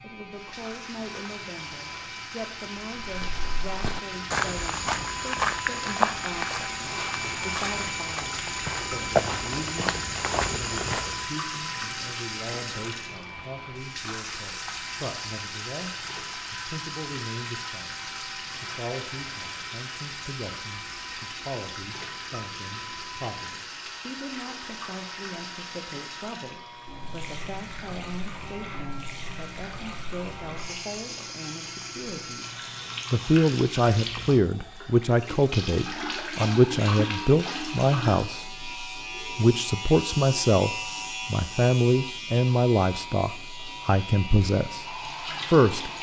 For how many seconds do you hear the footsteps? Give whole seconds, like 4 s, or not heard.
8 s.